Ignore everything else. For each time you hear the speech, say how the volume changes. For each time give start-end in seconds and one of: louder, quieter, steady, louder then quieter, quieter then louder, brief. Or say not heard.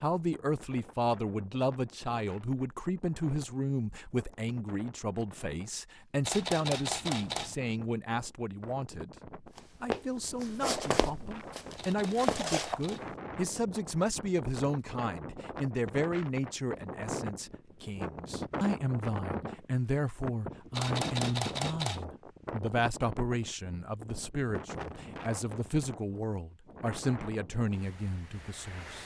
0.0-29.0 steady.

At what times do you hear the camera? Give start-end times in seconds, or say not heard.
6.2-7.5, 11.8-13.1, 20.7-22.1.